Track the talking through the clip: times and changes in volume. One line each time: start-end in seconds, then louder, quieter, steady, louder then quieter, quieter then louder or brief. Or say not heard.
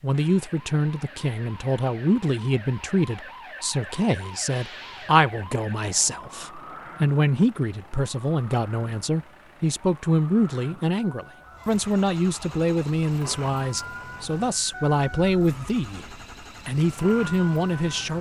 0.0-16.1 steady
16.6-18.1 brief.